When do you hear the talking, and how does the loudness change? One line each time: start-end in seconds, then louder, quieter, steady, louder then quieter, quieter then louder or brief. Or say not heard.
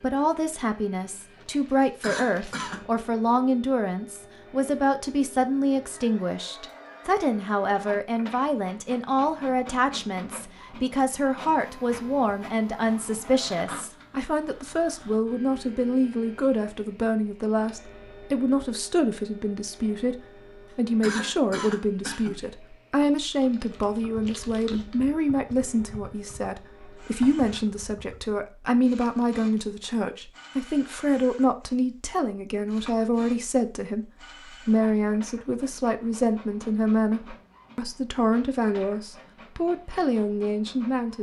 0.0-41.1 steady.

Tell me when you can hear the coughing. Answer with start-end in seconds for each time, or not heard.
2.0-2.9, 21.0-22.4.